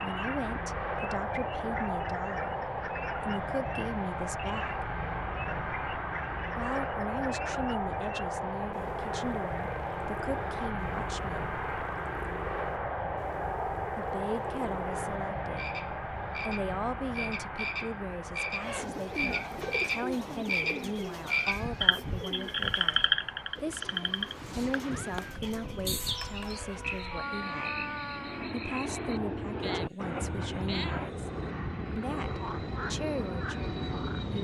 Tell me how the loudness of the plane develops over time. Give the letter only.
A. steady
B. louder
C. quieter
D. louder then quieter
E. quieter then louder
E.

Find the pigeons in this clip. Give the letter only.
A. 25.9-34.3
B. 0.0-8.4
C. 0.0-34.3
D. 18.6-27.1
D.